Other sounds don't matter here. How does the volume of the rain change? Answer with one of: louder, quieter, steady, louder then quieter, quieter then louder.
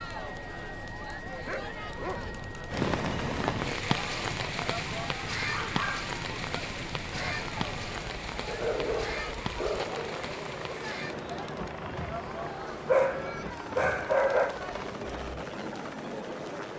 quieter.